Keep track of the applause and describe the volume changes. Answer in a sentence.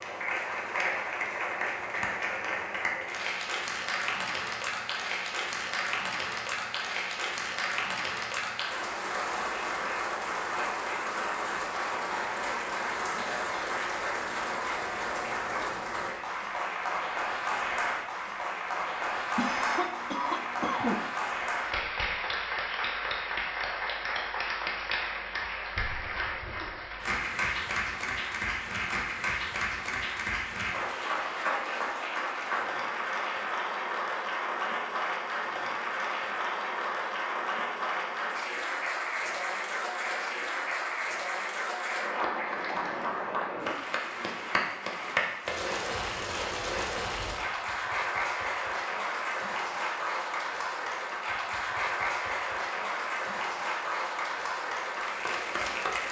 The loudness of the applause stays about the same.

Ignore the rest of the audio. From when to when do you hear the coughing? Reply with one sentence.
The coughing can be heard from 19.4 to 21.0 s.